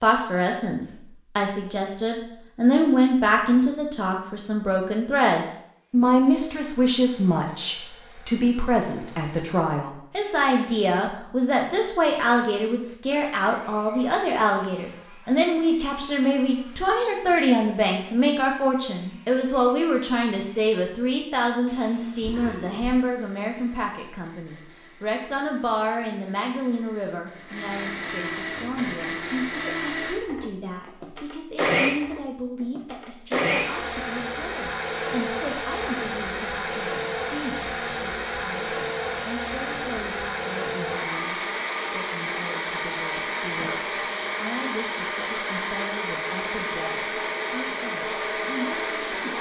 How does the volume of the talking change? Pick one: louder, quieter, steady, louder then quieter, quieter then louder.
quieter.